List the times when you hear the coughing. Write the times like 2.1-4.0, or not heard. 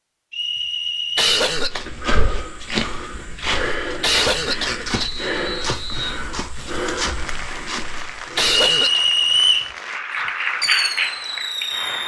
1.1-1.9, 4.0-5.1, 8.3-9.0.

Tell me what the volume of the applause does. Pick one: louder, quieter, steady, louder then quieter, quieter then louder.
louder.